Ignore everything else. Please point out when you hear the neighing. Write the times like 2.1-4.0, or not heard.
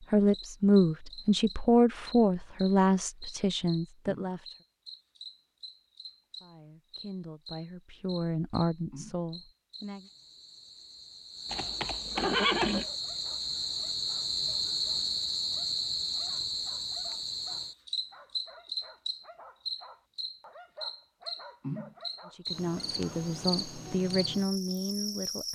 11.5-12.8.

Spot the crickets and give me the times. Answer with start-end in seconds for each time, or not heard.
0.0-25.4.